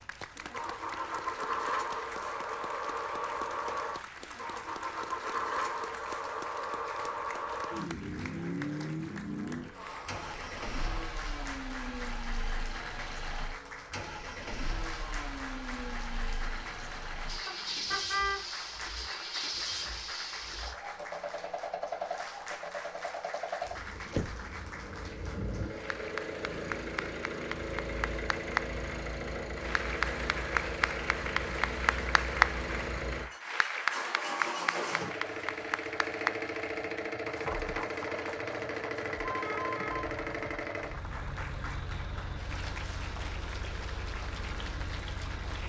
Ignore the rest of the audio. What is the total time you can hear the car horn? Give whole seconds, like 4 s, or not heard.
2 s.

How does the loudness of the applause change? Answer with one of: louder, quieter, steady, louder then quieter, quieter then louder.
louder then quieter.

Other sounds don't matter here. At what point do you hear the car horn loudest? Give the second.
18 s.